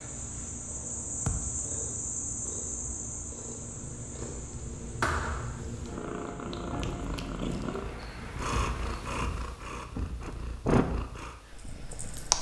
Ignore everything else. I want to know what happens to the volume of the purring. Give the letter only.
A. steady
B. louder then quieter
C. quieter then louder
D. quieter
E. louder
E.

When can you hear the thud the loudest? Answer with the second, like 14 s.
5 s.